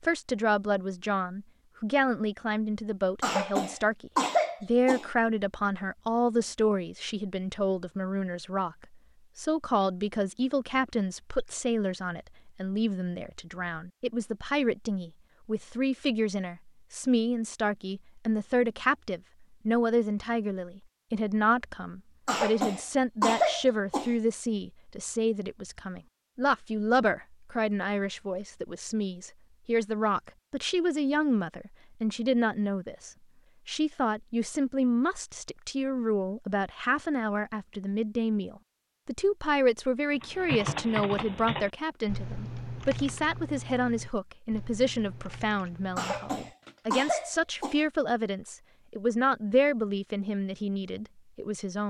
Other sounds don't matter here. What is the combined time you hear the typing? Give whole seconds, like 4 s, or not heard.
7 s.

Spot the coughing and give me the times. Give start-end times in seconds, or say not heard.
3.2-5.0, 22.2-24.1, 46.0-47.8.